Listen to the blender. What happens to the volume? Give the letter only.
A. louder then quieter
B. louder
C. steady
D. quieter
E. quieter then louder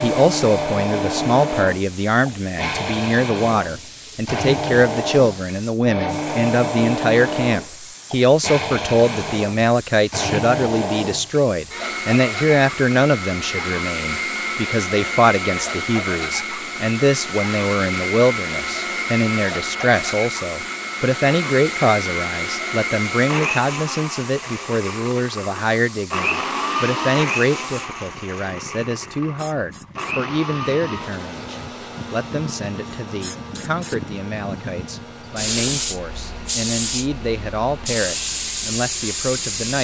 D.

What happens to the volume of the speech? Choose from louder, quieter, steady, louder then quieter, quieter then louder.
quieter.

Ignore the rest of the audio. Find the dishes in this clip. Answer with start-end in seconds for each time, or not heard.
not heard.